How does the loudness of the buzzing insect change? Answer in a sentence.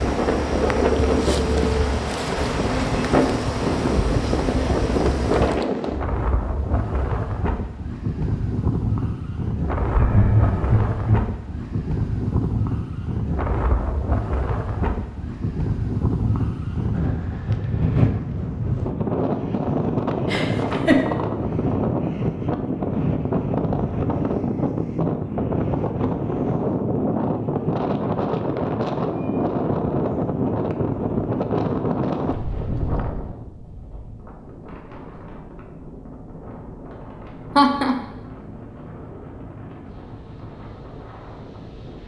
The volume of the buzzing insect stays about the same.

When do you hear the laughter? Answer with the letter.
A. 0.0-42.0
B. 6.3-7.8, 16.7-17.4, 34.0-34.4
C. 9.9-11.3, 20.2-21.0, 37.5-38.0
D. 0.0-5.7
C.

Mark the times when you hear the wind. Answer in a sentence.
The wind can be heard from 0.0 to 42.0 s.